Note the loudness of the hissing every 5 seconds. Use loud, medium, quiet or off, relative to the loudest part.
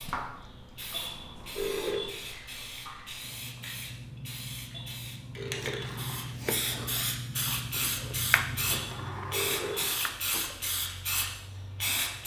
medium, loud, loud.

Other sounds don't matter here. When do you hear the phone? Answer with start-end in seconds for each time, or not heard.
0.9-2.1, 4.7-5.9, 8.7-9.8.